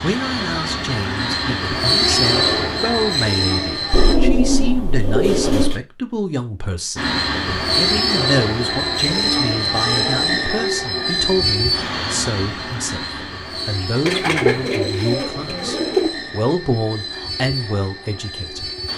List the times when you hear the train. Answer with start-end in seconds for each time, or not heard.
0.0-4.2, 7.0-18.9.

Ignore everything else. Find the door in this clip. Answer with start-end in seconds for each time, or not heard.
not heard.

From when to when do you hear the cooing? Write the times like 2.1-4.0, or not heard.
3.9-5.8, 14.1-16.1.